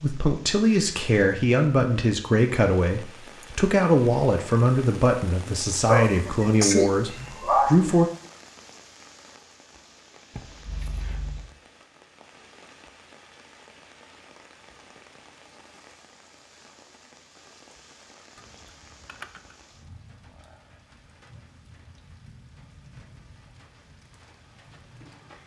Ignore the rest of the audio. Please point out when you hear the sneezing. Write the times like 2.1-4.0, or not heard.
5.8-8.0.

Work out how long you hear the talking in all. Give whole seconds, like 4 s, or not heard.
8 s.